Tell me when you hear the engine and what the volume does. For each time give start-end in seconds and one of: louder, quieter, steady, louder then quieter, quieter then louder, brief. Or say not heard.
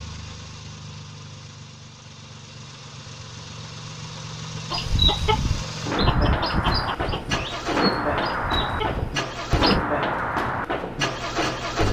0.0-11.8 louder.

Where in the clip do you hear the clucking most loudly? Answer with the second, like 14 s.
5 s.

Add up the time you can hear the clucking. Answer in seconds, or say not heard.
5 s.